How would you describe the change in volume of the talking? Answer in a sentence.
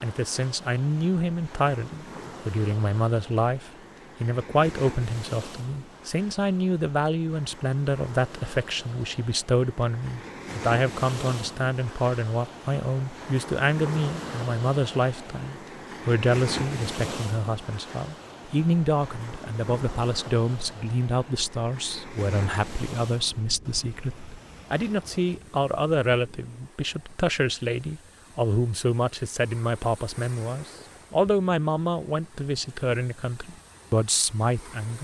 The volume of the talking stays about the same.